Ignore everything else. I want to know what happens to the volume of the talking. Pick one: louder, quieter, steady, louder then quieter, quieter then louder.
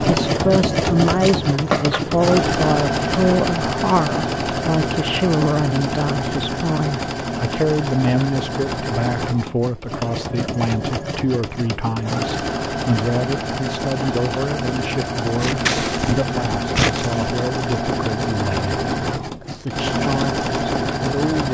quieter.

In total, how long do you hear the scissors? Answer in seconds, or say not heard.
3 s.